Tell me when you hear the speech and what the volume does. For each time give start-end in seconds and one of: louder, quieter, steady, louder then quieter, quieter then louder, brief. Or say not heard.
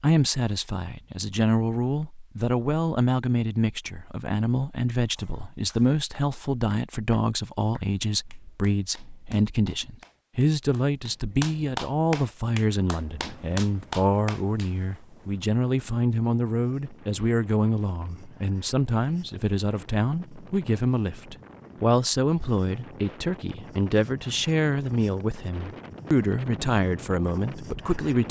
0.0-28.2 steady.